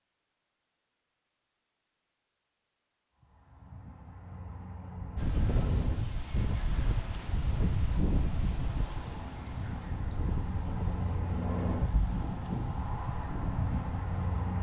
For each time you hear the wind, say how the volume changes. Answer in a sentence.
The wind can be heard from 5.2 to 14.5 s, getting quieter.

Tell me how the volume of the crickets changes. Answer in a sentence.
The loudness of the crickets goes up.